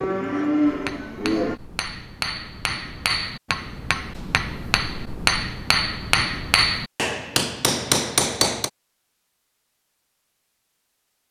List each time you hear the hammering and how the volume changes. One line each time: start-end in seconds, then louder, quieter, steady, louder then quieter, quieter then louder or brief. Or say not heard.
0.7-8.7 louder.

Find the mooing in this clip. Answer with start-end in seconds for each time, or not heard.
0.0-1.6.